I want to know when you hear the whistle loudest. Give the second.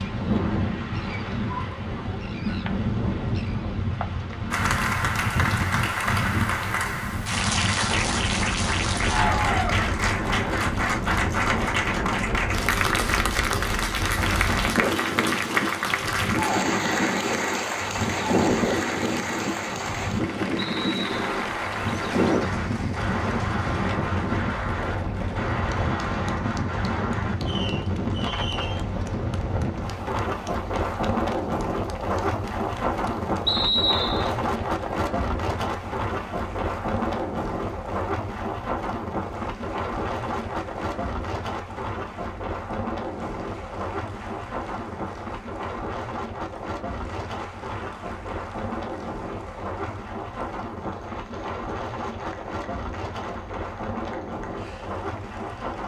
34 s.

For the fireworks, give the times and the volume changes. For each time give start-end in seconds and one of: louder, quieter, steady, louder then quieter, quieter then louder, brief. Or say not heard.
21.1-28.9 steady.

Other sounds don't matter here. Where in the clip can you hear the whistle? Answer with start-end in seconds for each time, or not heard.
20.6-21.2, 33.5-34.3.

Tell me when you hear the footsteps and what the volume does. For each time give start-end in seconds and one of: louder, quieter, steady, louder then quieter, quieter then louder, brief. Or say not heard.
not heard.